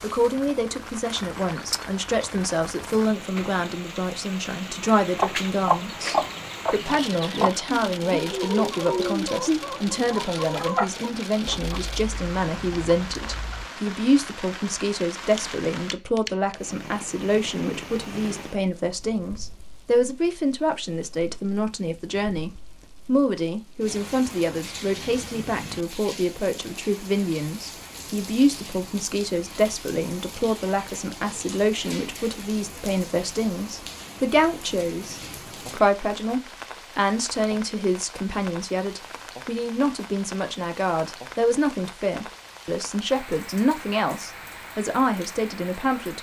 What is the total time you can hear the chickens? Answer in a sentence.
The chickens can be heard for 9 seconds in total.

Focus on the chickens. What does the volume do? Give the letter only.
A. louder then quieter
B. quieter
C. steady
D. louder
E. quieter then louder
B.